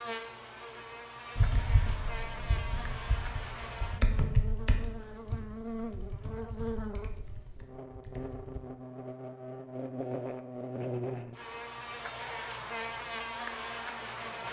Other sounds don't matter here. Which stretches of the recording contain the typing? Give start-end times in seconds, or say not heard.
1.4-8.6.